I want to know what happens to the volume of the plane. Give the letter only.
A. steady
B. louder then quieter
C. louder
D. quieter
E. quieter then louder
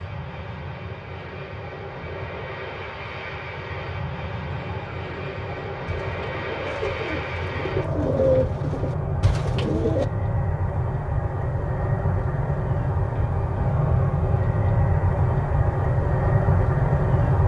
C.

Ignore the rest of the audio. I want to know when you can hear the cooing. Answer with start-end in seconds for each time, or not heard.
4.5-10.1.